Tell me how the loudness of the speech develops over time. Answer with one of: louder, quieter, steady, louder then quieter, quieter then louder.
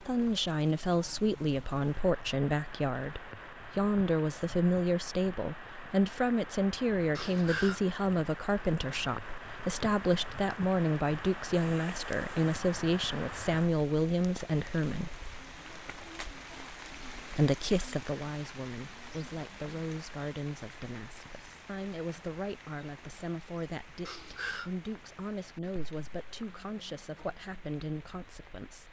quieter.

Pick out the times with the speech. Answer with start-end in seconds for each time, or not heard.
0.0-15.2, 17.3-28.8.